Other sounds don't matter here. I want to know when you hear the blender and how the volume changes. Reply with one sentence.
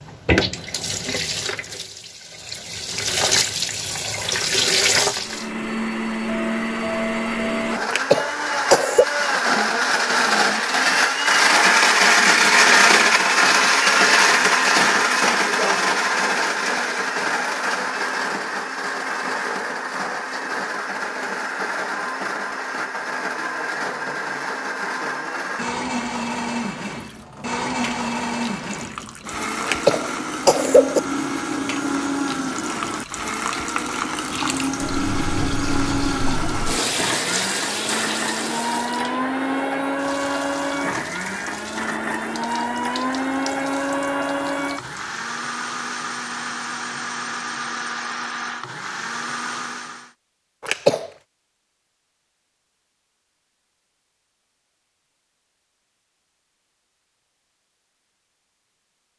You can hear the blender from 5.1 to 50.1 s, getting quieter.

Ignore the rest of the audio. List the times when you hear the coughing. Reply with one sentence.
The coughing can be heard from 7.8 to 9.1 s, from 29.6 to 31.0 s and from 50.6 to 51.1 s.